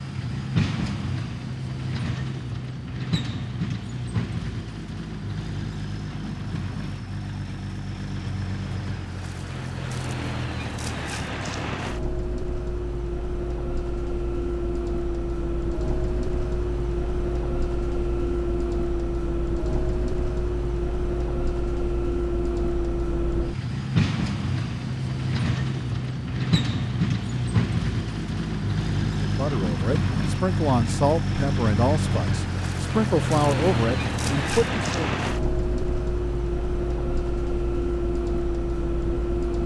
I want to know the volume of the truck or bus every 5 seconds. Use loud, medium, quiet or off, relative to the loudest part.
loud, medium, medium, loud, loud, loud, loud, loud.